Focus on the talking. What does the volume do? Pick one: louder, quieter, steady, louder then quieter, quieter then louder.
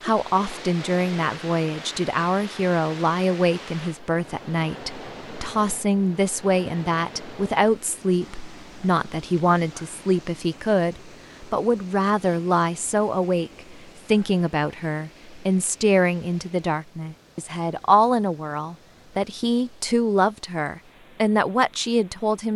steady.